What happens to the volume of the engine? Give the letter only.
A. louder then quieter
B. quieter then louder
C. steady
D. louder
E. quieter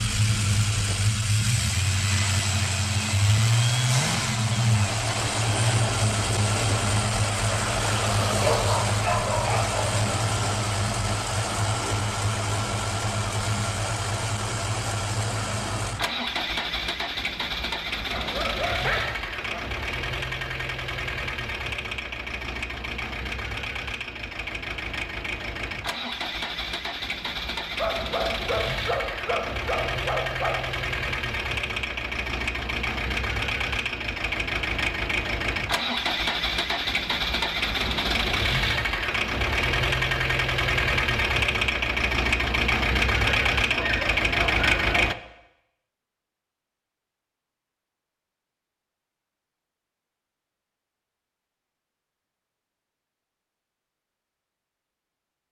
B.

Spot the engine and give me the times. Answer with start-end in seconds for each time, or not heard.
0.0-45.1.